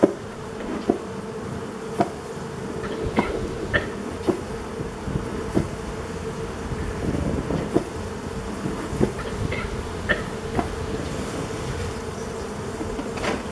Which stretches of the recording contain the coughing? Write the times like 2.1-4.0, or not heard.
2.8-3.9, 9.2-11.0.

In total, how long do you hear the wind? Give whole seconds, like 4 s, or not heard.
13 s.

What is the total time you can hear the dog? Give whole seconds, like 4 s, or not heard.
not heard.